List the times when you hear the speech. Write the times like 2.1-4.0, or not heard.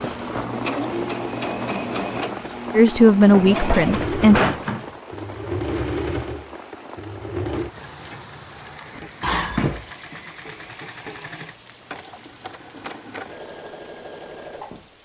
2.7-4.5.